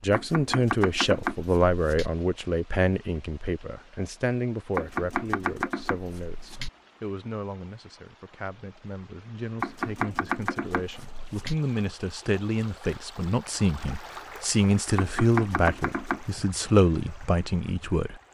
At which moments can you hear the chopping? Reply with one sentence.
You can hear the chopping from 0.1 to 2.1 s, from 4.8 to 6.7 s, from 9.6 to 11.6 s and from 14.9 to 16.4 s.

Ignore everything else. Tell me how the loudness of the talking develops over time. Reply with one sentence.
The loudness of the talking goes down, then up.